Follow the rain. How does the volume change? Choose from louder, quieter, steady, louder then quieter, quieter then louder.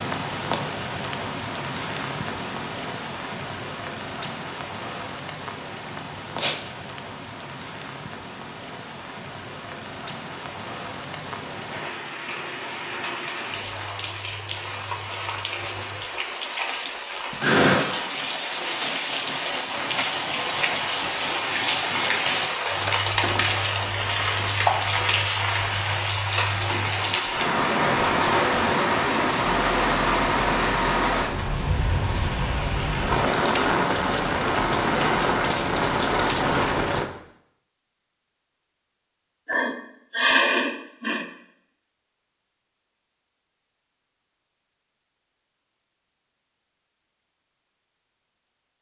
louder.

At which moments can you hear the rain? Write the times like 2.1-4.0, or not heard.
0.0-37.1.